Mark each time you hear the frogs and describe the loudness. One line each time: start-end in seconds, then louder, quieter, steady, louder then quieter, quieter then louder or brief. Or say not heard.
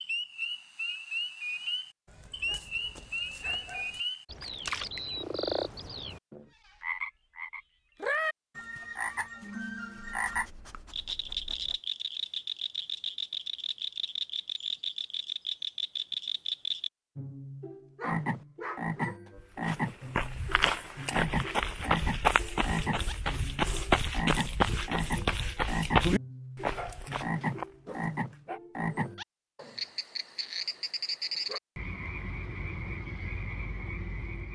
0.0-34.5 steady.